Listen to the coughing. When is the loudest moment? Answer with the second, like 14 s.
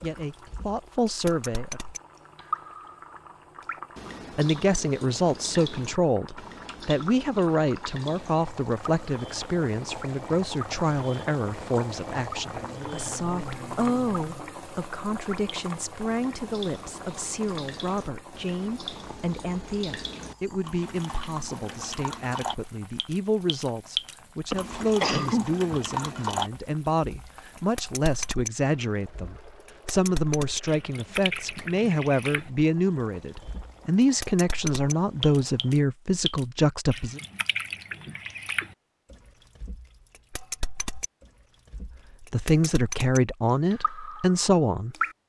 25 s.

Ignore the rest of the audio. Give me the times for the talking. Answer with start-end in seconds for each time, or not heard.
0.0-1.8, 4.3-37.2, 42.2-45.0.